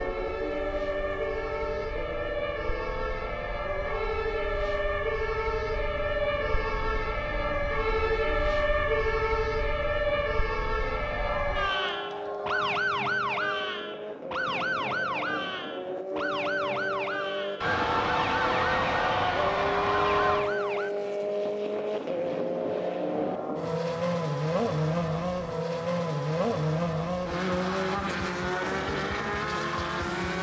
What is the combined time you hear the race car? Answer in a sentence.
You can hear the race car for 30 seconds altogether.